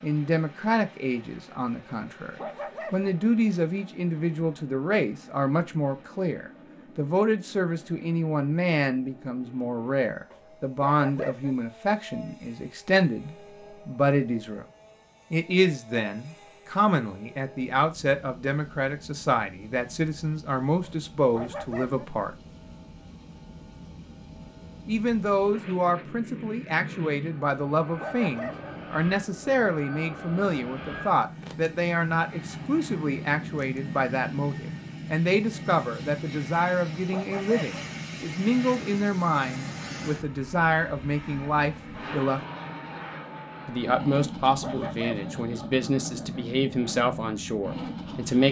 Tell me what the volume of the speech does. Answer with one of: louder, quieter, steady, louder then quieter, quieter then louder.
steady.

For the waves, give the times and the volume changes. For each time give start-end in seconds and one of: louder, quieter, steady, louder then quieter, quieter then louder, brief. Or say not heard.
not heard.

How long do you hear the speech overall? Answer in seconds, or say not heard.
44 s.